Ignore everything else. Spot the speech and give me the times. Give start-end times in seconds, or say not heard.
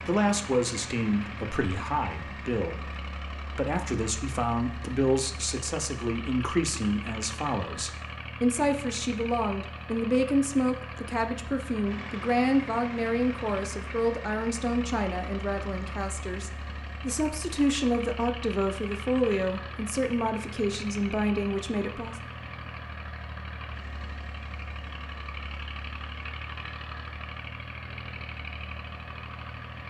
0.1-22.1.